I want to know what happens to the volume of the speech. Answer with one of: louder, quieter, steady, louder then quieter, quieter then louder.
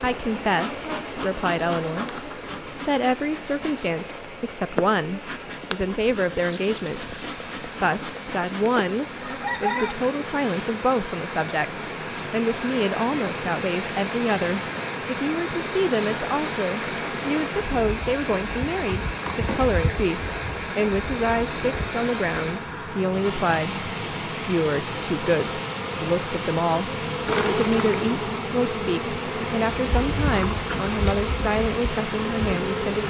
steady.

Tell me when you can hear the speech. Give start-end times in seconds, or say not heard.
0.0-33.0.